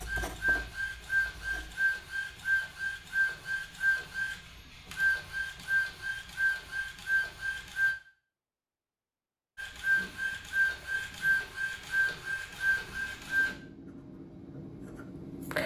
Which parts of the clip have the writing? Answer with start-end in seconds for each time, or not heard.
0.0-1.8, 13.0-15.6.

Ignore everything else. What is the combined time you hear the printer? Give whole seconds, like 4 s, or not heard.
12 s.